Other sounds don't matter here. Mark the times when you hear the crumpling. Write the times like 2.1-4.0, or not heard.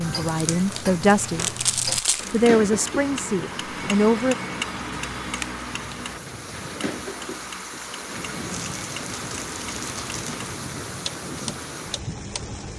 0.2-2.5, 5.3-6.1, 8.5-10.4.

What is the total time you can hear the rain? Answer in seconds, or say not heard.
13 s.